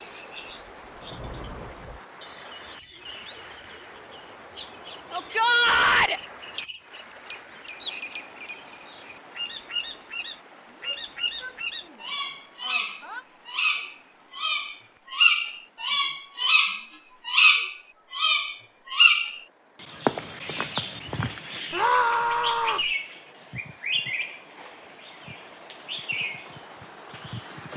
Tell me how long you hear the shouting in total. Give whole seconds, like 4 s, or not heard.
5 s.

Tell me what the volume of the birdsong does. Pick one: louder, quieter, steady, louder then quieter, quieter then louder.
louder then quieter.